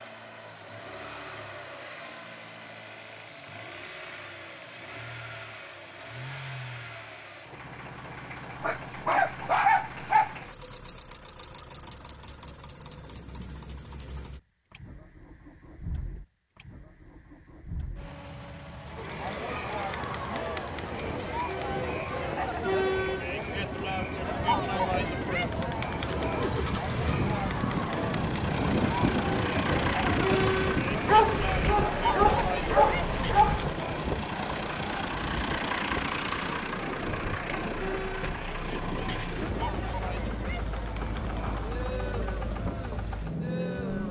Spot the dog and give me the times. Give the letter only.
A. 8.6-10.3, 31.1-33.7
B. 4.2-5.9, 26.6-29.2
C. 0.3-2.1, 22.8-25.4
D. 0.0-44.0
A.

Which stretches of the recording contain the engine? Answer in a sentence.
You can hear the engine from 0.0 to 44.0 s.